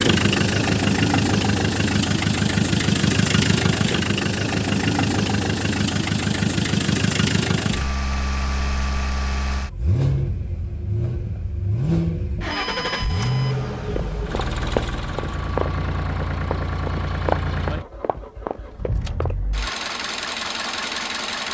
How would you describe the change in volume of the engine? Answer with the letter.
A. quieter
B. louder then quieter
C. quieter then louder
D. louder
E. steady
A.